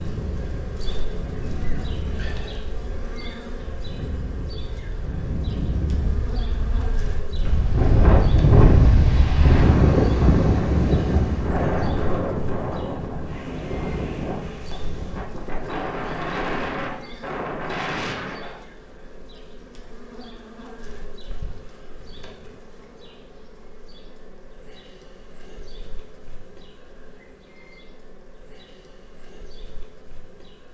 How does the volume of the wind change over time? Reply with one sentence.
The volume of the wind goes up, then down.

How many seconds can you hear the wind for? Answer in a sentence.
You can hear the wind for 19 seconds altogether.